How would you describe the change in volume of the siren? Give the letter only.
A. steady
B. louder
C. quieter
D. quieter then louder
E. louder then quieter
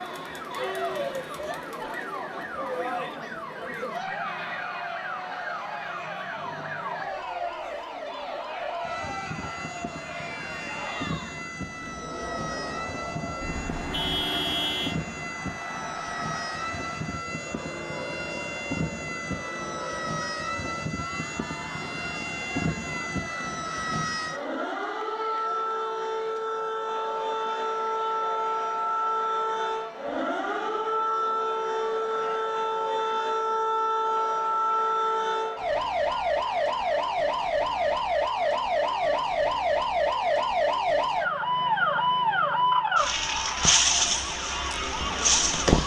B.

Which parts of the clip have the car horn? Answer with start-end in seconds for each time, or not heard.
13.4-14.9.